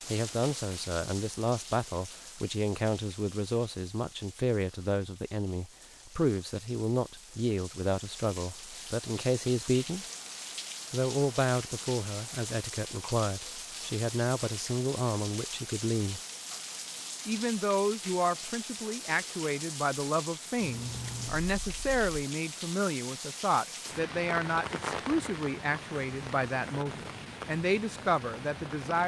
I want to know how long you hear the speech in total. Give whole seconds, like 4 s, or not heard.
27 s.